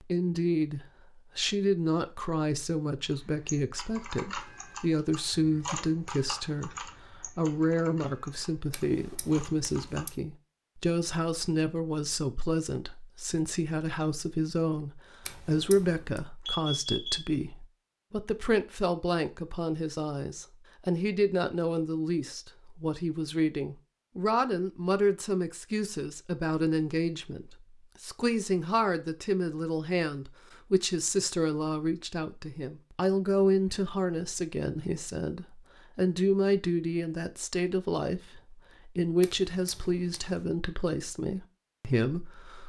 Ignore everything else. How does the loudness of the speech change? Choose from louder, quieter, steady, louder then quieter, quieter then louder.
steady.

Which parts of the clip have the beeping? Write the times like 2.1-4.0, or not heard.
16.4-17.3.